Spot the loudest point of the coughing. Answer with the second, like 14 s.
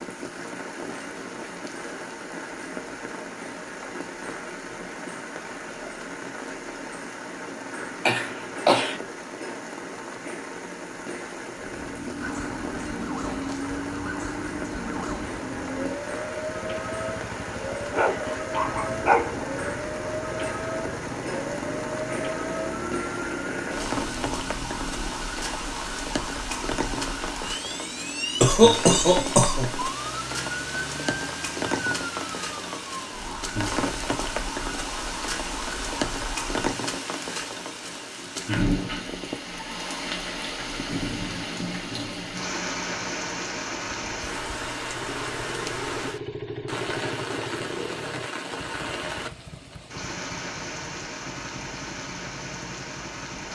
29 s.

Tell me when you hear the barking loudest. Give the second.
19 s.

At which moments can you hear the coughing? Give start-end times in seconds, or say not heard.
8.1-9.0, 28.4-29.9.